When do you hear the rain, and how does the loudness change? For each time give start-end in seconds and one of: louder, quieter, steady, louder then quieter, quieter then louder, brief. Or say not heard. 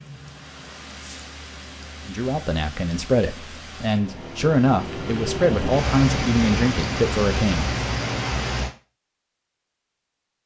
0.0-8.7 louder.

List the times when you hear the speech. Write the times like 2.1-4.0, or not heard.
2.0-7.8.